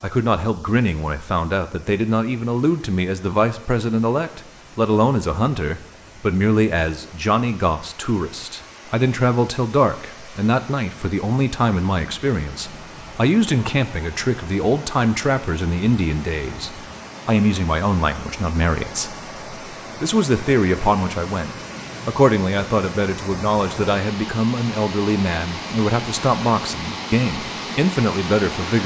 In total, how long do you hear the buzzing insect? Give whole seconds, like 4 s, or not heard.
not heard.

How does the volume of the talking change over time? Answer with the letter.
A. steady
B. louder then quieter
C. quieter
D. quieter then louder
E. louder
A.